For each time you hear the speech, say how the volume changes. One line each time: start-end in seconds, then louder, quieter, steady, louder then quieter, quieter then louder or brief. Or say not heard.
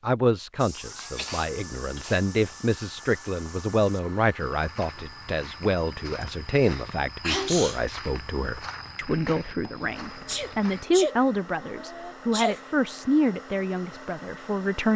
0.0-14.9 steady.